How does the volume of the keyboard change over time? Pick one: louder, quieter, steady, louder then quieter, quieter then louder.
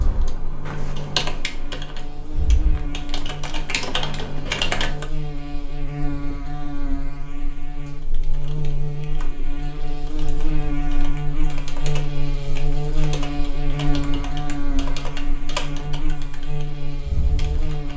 quieter then louder.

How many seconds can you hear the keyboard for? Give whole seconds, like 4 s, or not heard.
15 s.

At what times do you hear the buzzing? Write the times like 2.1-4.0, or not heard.
0.0-17.9.